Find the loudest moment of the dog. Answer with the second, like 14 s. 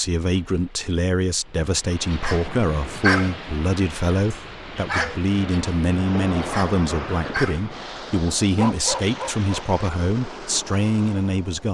3 s.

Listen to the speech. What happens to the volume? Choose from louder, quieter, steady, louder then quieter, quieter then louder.
steady.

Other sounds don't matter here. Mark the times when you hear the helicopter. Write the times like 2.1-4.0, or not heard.
not heard.